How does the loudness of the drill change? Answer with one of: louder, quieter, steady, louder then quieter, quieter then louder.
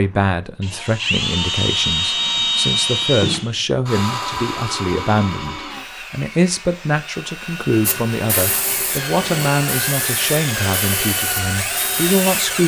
quieter then louder.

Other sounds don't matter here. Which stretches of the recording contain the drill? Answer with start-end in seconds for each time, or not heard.
0.0-12.6.